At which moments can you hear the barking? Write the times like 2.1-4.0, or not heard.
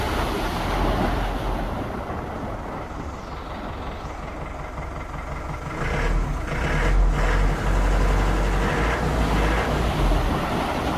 not heard.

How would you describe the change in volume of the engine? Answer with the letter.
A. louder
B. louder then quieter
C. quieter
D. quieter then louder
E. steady
A.